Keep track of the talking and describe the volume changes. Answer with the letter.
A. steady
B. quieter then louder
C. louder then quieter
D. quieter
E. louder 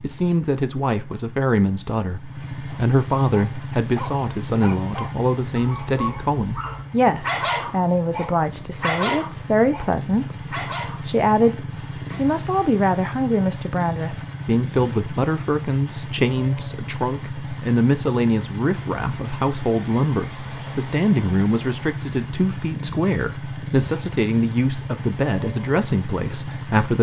A.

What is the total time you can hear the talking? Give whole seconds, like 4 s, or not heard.
27 s.